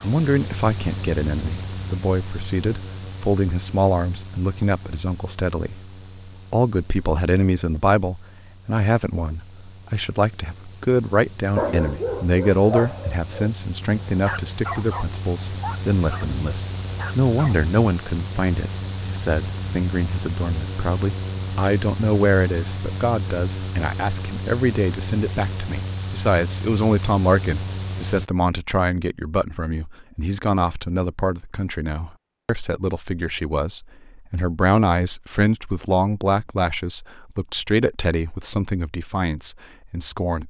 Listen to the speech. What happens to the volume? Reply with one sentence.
The volume of the speech stays about the same.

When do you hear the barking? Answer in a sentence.
The barking can be heard from 11.6 to 17.6 s.